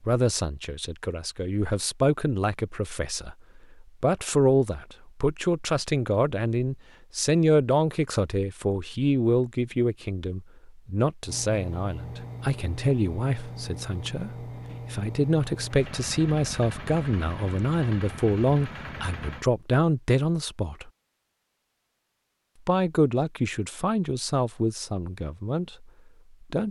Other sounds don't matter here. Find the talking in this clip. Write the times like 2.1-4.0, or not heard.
0.0-20.9, 22.6-26.6.